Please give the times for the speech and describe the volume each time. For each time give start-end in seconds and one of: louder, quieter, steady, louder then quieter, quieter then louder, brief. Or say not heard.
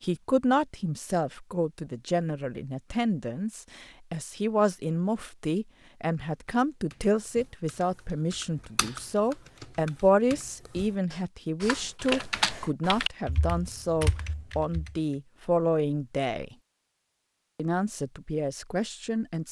0.0-16.6 steady
17.6-19.4 brief.